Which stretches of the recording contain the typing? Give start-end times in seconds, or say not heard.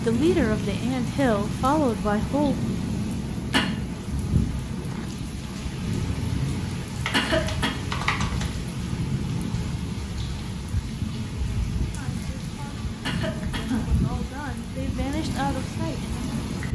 7.0-8.6.